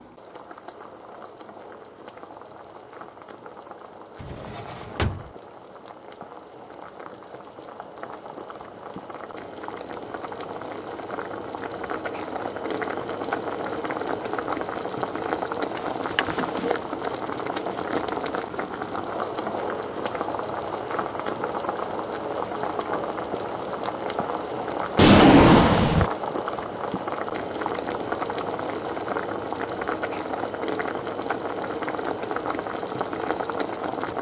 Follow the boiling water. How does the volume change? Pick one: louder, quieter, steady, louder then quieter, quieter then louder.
louder.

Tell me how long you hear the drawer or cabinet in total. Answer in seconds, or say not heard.
3 s.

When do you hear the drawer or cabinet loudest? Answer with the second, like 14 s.
25 s.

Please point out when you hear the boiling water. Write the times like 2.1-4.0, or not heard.
0.0-34.1.